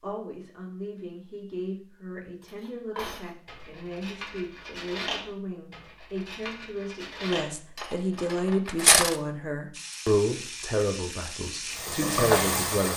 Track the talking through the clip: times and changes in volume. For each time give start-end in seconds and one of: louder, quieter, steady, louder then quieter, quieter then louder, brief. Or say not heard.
0.0-12.9 louder.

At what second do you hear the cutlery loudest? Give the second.
9 s.